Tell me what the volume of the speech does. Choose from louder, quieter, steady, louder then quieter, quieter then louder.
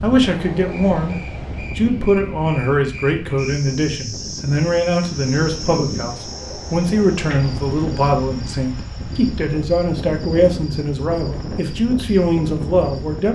steady.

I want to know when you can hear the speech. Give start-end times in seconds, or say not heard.
0.0-13.3.